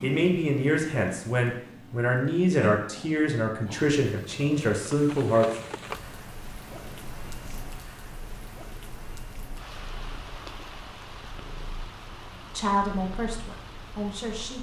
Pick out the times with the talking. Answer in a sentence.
The talking can be heard from 0.0 to 5.5 s and from 12.6 to 14.5 s.